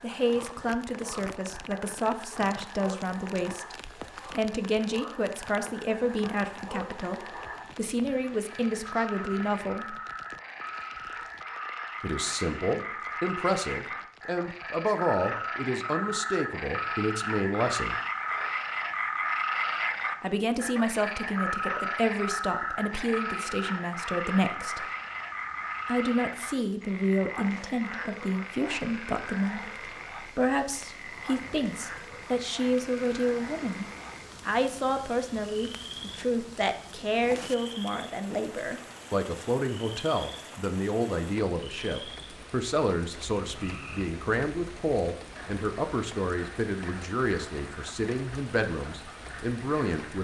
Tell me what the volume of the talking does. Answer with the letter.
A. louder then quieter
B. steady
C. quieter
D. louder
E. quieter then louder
B.